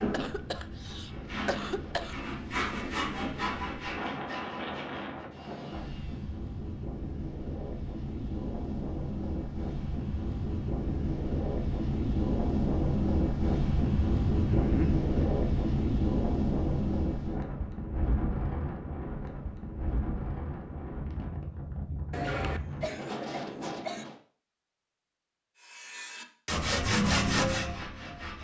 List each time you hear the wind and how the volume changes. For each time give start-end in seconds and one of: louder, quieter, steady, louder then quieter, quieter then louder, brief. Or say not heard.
0.1-24.1 louder then quieter.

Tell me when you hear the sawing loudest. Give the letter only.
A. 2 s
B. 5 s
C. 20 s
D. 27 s
D.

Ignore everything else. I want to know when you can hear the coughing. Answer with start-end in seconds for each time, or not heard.
0.1-2.1, 14.4-15.1, 22.1-24.1.